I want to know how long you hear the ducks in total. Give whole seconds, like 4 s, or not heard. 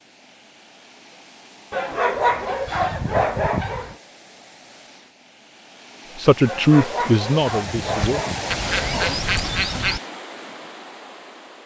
2 s.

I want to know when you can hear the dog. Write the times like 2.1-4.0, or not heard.
1.7-4.0, 6.5-9.2.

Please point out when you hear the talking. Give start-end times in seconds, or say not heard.
6.2-8.2.